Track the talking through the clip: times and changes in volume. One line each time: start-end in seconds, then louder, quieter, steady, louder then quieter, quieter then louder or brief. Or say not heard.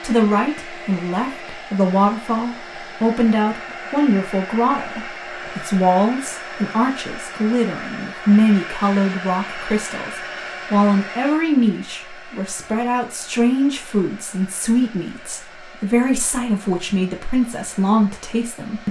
0.0-18.8 steady.